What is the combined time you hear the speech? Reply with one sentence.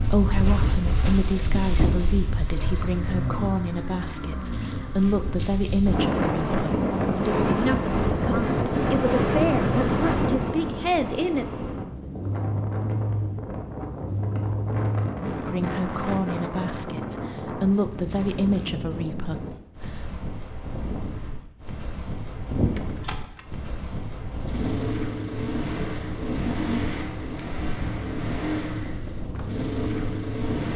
The speech can be heard for 16 seconds in total.